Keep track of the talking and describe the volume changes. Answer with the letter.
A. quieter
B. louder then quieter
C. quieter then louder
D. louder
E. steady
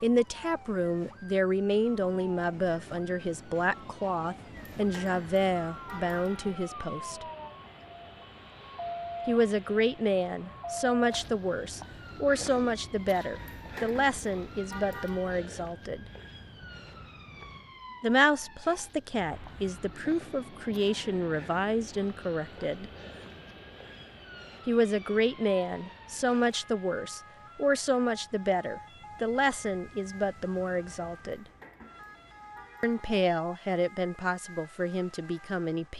E.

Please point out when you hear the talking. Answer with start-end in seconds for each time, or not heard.
0.0-7.2, 9.2-16.1, 18.0-22.9, 24.6-31.4, 32.8-35.9.